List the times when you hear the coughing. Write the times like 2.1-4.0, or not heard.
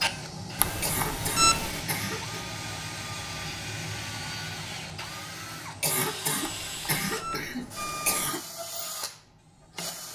0.8-2.4, 5.8-8.4.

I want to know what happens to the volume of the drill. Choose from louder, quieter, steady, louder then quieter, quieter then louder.
steady.